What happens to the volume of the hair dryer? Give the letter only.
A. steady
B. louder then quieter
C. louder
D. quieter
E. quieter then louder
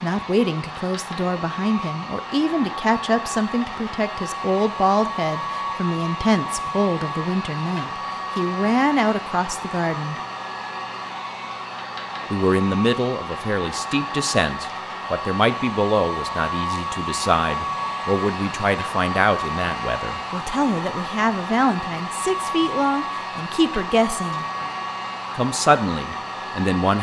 A.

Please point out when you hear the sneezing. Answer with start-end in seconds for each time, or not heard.
not heard.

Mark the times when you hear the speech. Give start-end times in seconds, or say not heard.
0.0-10.2, 12.3-24.4, 25.4-26.9.